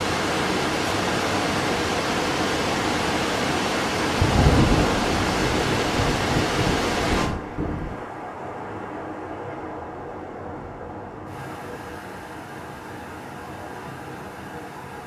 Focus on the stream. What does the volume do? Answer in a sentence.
The loudness of the stream goes down.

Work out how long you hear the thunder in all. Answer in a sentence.
You can hear the thunder for 4 seconds altogether.